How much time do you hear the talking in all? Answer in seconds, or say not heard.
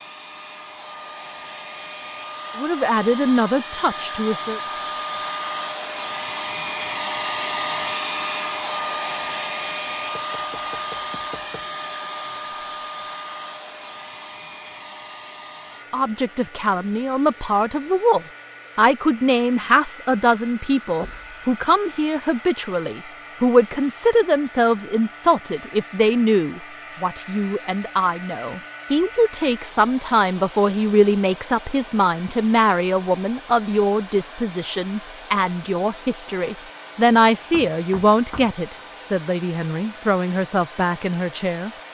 28 s.